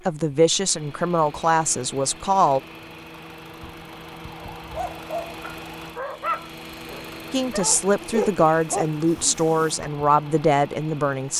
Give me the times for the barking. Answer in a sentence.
The barking can be heard from 4.4 to 9.9 s.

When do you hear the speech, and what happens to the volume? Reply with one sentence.
You can hear the speech briefly from 0.1 to 2.6 s; and from 7.3 to 11.3 s, at a steady volume.